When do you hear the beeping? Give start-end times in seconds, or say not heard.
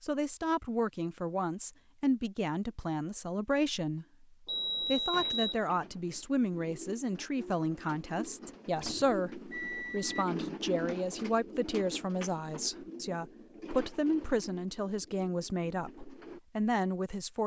4.5-5.6, 8.8-10.2.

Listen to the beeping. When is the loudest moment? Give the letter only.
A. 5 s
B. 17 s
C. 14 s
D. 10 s
A.